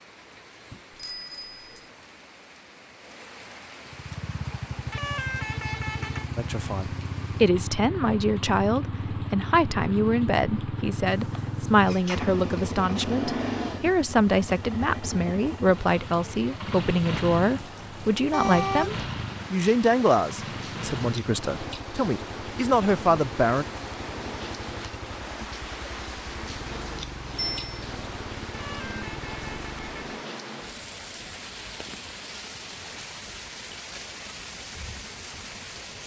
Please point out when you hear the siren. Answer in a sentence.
You can't hear the siren here.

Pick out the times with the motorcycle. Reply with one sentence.
You can hear the motorcycle from 3.9 to 30.0 s.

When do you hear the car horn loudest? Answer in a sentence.
The volume of the car horn peaks at 19 seconds.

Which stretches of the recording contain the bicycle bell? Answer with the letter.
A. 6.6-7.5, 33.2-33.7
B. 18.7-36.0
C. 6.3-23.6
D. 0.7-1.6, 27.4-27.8
D.